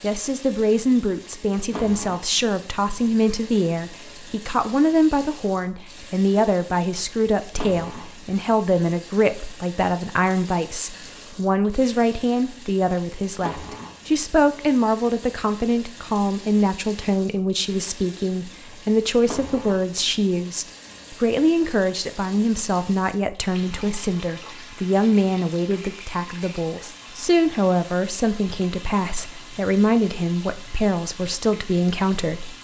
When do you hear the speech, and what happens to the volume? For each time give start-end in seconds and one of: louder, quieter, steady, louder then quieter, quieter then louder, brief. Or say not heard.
0.0-32.5 steady.